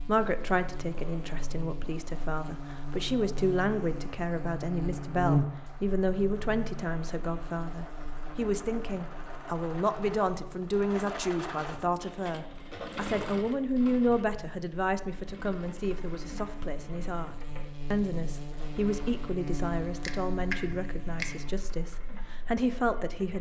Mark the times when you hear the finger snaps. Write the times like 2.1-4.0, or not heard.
20.0-21.4.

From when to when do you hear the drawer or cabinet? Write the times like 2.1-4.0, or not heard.
not heard.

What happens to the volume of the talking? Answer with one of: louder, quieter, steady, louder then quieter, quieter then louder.
steady.